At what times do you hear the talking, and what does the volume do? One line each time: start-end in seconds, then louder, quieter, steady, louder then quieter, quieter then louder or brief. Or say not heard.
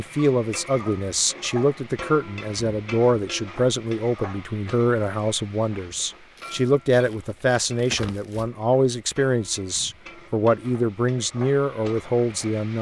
0.0-12.7 steady.